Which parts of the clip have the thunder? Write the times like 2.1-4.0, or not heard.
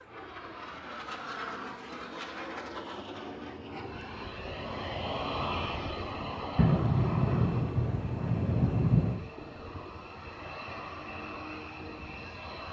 6.5-9.3.